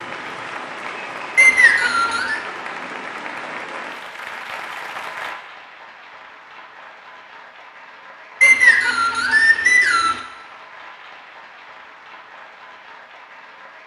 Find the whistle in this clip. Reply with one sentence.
The whistle can be heard from 1.4 to 2.4 s and from 8.4 to 10.2 s.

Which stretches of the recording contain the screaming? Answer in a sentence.
The screaming can't be heard in this clip.